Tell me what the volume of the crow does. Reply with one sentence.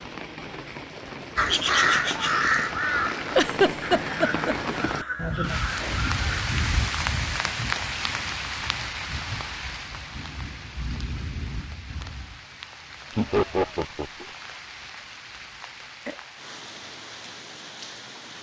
The volume of the crow goes down.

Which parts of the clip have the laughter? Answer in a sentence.
The laughter can be heard from 3.4 to 4.5 s and from 13.2 to 14.3 s.